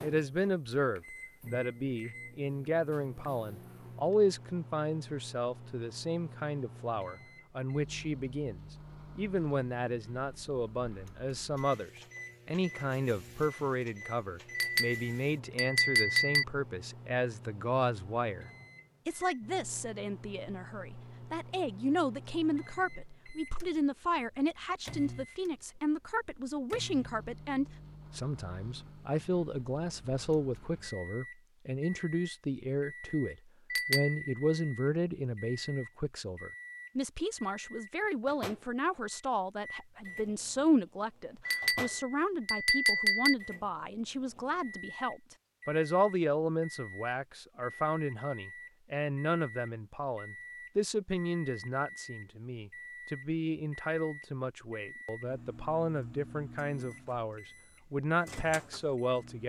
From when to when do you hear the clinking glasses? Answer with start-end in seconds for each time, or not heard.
14.6-16.4, 33.7-34.2, 41.5-43.4.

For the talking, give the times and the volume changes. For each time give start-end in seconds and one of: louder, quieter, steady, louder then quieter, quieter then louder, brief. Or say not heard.
0.0-59.4 steady.